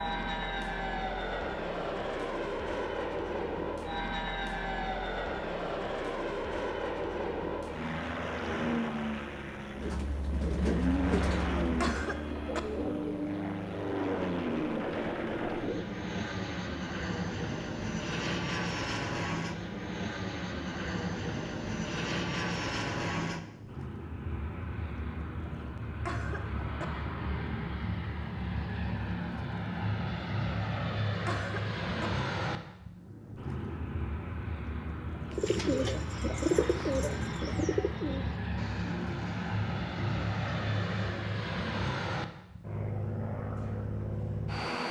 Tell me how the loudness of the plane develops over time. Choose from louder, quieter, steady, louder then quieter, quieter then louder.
steady.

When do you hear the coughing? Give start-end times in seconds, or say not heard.
11.8-12.6, 26.1-26.9, 31.2-32.1.